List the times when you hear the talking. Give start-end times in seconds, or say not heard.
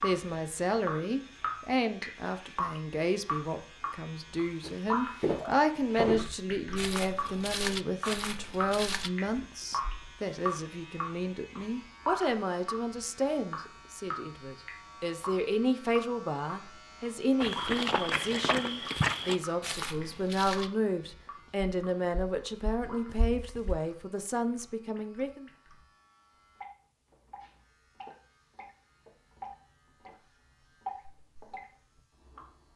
0.0-25.4.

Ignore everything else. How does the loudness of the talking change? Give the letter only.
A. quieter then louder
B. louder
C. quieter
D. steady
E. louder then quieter
D.